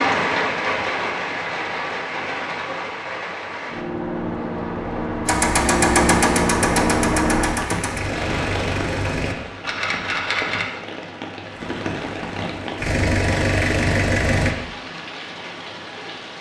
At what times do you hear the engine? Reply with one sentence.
The engine can be heard from 5.2 to 9.3 s and from 11.5 to 14.6 s.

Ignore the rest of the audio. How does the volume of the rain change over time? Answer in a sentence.
The volume of the rain goes down.